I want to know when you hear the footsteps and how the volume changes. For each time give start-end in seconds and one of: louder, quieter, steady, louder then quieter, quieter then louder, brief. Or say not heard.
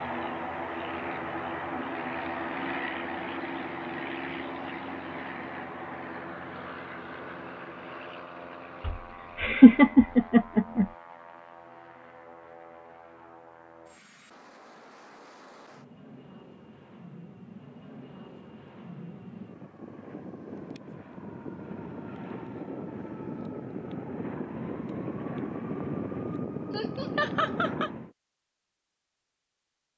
not heard.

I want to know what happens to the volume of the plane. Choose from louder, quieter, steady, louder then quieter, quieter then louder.
quieter then louder.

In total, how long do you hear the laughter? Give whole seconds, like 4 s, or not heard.
3 s.